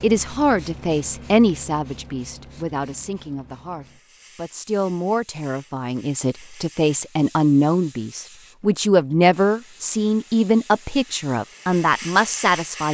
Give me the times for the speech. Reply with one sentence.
The speech can be heard from 0.0 to 12.8 s.